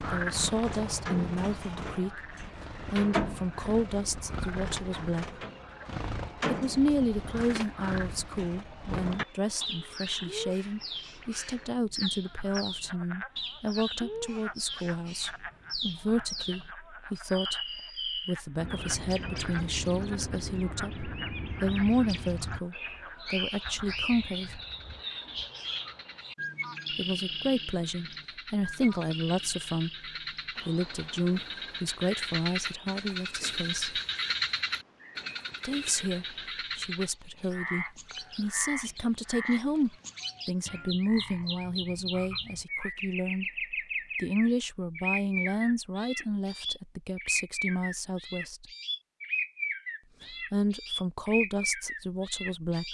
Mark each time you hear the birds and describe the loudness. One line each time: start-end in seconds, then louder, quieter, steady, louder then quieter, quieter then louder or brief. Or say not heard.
0.0-52.9 quieter then louder.